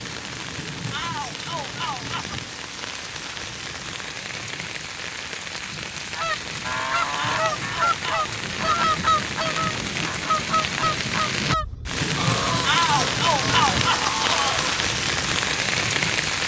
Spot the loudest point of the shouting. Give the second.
13 s.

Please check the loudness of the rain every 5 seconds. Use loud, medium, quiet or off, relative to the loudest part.
medium, medium, loud, loud.